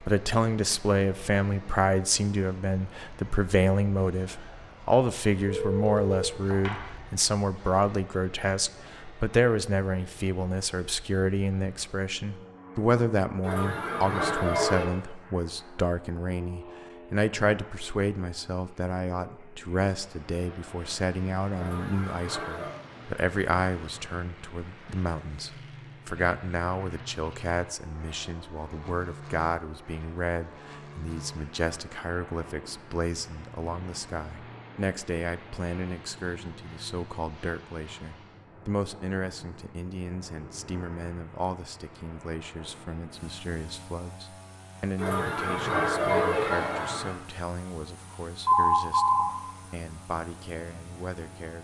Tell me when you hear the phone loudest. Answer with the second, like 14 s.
49 s.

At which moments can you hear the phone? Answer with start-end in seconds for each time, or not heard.
5.5-6.8, 48.5-49.2.